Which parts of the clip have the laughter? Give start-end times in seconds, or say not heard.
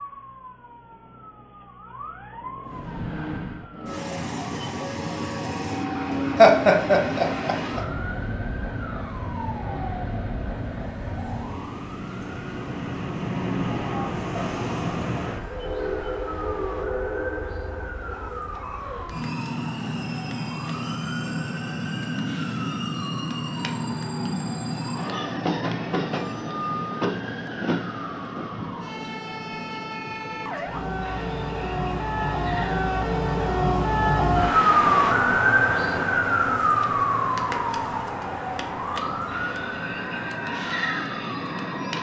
6.3-7.8.